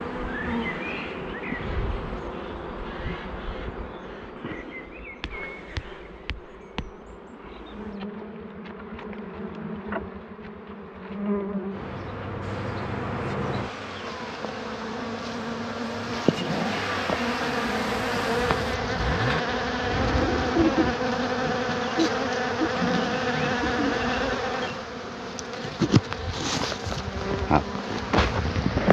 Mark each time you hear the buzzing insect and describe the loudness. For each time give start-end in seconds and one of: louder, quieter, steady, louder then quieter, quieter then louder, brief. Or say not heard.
0.0-28.8 louder.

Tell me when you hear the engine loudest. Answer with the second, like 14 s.
17 s.